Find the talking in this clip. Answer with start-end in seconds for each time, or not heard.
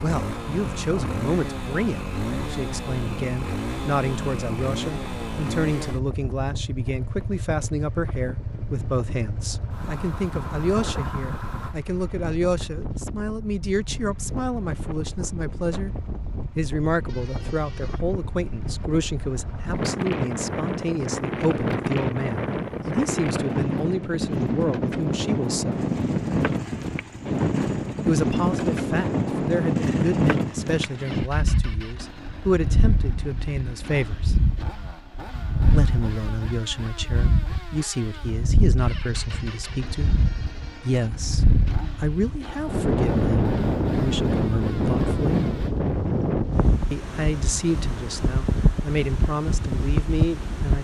0.0-15.9, 16.6-25.9, 28.1-34.4, 35.7-40.1, 40.8-45.5, 46.9-50.7.